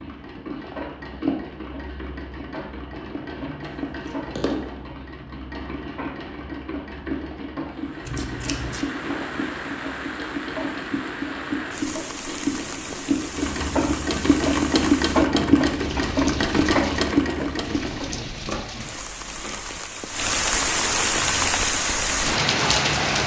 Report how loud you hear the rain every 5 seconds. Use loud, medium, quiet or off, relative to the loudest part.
off, quiet, quiet, quiet, loud.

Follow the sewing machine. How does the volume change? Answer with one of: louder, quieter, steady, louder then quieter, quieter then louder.
louder.